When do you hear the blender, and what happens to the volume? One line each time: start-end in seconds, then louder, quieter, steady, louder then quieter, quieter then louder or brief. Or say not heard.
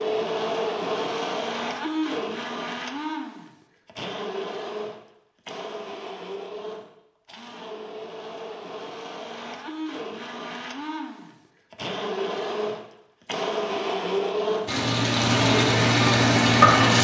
0.0-16.9 quieter then louder.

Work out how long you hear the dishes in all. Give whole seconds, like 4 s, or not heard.
not heard.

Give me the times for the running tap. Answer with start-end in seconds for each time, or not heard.
14.7-16.9.